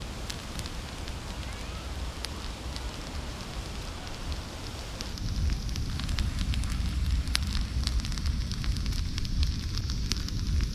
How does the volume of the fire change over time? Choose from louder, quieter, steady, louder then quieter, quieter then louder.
louder.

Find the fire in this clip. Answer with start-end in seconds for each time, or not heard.
0.0-10.7.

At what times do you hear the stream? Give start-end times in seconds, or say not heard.
0.0-8.0.